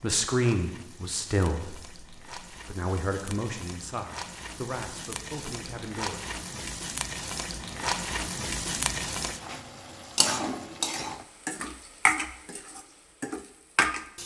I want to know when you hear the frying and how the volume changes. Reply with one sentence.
You can hear the frying from 0.0 to 14.2 s, getting louder.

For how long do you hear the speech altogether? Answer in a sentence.
The speech can be heard for 6 seconds in total.